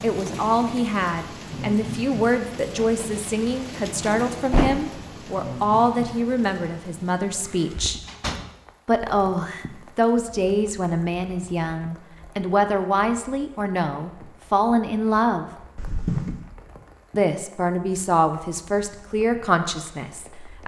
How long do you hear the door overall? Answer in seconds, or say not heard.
3 s.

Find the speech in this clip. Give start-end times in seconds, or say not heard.
0.0-8.0, 8.8-15.4, 17.1-20.6.